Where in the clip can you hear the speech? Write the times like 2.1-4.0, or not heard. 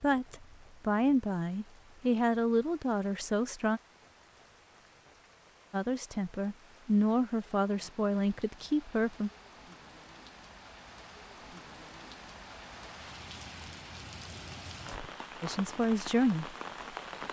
0.0-3.8, 5.7-9.3, 15.4-16.6.